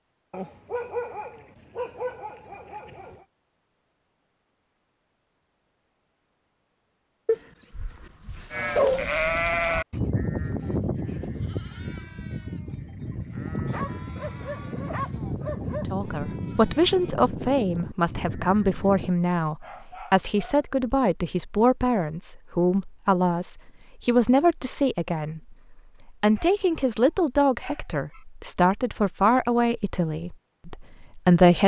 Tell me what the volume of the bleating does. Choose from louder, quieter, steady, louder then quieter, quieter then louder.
quieter.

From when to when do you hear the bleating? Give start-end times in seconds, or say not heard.
8.5-19.1.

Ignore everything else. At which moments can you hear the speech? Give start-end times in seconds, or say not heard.
15.8-31.6.